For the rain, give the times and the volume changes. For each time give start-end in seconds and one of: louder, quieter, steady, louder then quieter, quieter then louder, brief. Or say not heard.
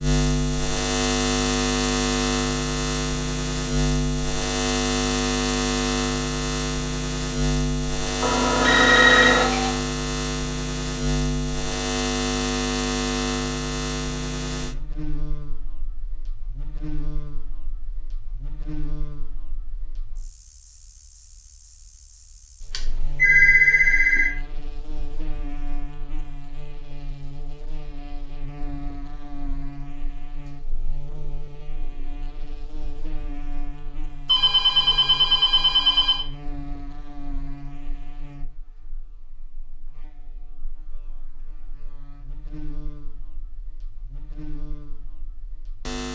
not heard.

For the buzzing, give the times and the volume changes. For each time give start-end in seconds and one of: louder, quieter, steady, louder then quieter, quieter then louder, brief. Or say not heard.
0.0-46.0 quieter.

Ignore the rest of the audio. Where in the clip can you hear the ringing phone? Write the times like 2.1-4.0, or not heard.
8.2-9.7, 22.7-24.3, 34.2-36.2.